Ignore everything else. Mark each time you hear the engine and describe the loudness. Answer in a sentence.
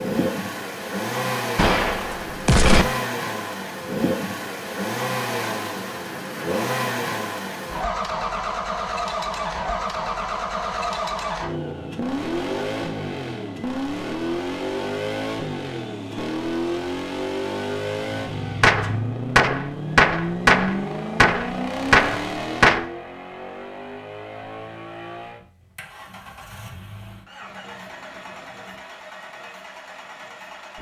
The engine can be heard from 0.0 to 30.7 s, getting quieter.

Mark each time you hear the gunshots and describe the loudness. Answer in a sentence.
The gunshots can be heard briefly from 1.6 to 2.9 s; and from 18.6 to 22.9 s, at a steady volume.